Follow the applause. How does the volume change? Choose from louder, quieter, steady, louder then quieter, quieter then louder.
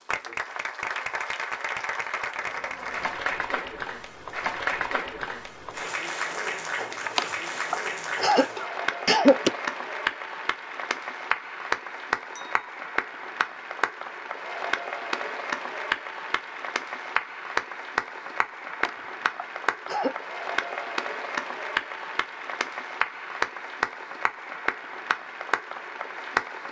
steady.